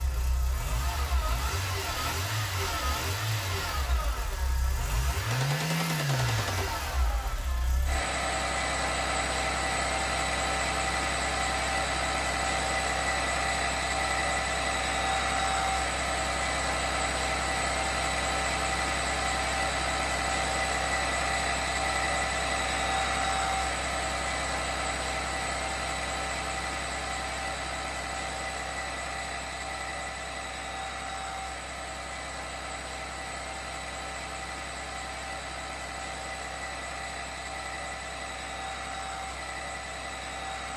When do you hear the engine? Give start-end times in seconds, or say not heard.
0.0-40.7.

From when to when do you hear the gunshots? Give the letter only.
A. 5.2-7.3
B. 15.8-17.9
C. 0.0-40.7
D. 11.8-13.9
A.